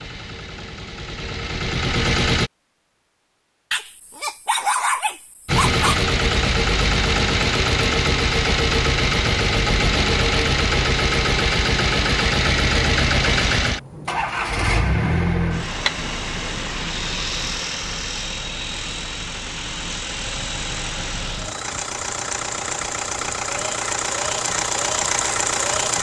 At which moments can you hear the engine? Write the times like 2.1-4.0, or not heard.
0.0-2.5, 5.5-25.9.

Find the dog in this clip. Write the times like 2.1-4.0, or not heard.
3.7-6.0.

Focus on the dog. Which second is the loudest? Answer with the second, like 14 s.
5 s.